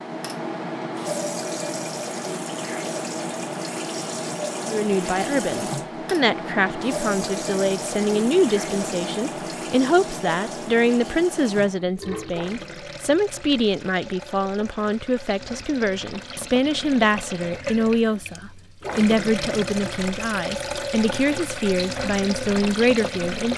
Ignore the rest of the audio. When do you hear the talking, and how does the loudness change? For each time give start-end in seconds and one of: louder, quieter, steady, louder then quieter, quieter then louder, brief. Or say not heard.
4.7-23.5 steady.